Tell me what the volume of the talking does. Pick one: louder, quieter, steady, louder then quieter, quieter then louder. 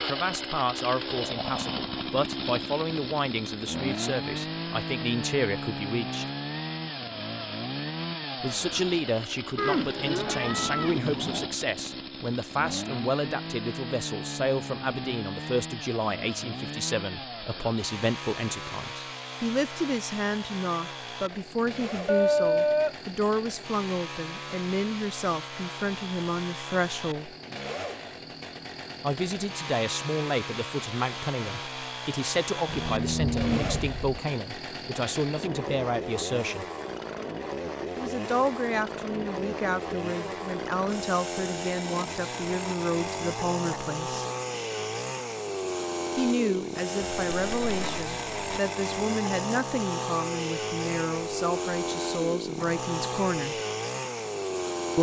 steady.